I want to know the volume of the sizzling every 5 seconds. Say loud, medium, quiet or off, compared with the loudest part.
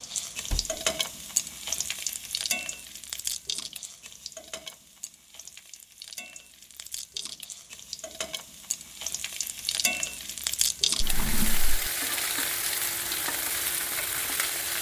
loud, medium, loud.